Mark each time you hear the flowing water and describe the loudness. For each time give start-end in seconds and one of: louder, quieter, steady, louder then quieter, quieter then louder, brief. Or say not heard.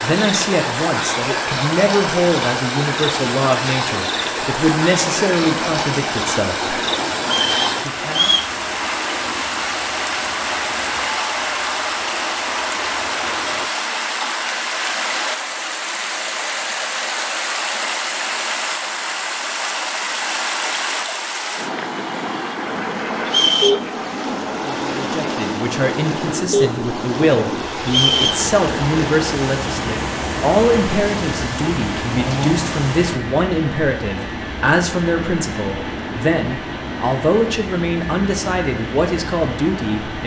0.0-33.2 steady.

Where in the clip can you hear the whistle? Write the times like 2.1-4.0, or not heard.
7.2-8.5, 23.2-23.8, 27.9-28.4.